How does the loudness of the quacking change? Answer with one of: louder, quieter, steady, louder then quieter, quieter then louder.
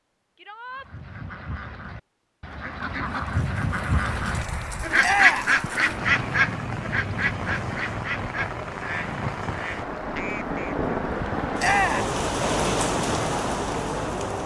louder then quieter.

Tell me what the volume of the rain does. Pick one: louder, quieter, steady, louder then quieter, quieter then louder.
louder.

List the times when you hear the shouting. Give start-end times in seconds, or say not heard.
0.3-0.9, 5.0-5.5, 11.6-12.1.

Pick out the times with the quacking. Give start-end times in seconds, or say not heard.
0.7-10.8.